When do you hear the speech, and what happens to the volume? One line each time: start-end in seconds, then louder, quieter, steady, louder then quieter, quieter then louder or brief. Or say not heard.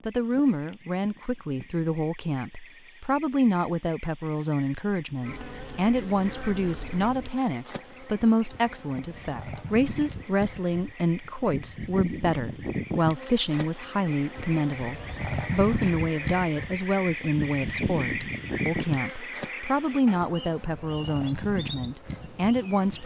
0.1-23.0 steady.